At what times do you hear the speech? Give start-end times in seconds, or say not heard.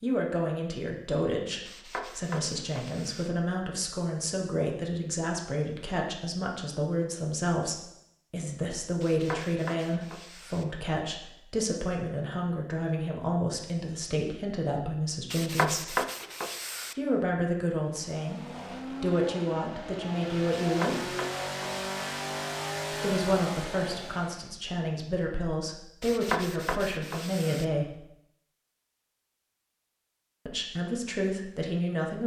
0.0-15.9, 16.9-21.1, 22.9-28.1, 30.4-32.2.